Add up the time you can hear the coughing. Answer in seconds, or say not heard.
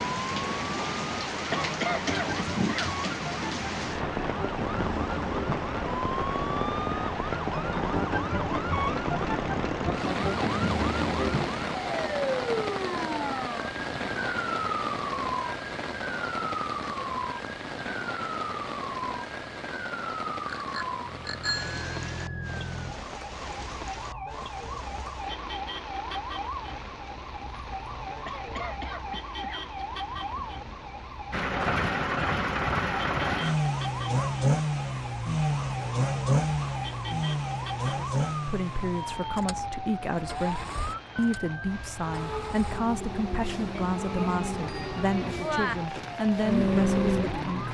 3 s.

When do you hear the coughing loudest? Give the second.
2 s.